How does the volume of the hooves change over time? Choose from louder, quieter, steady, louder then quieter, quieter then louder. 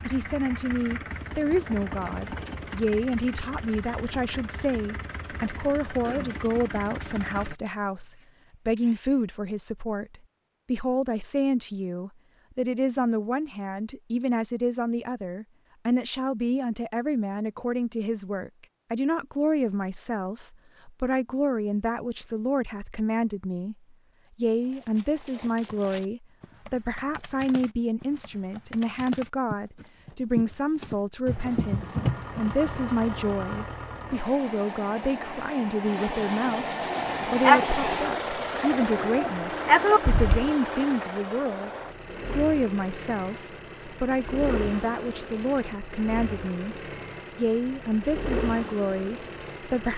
louder.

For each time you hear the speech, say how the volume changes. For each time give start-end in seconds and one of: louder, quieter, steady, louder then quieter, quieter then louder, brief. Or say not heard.
0.0-23.8 steady
24.4-46.8 steady
47.4-49.9 brief.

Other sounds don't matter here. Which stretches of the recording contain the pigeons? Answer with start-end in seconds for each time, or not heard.
36.8-40.5.